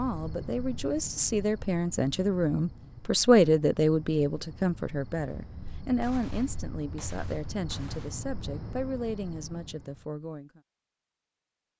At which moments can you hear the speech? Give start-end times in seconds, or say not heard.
0.0-10.6.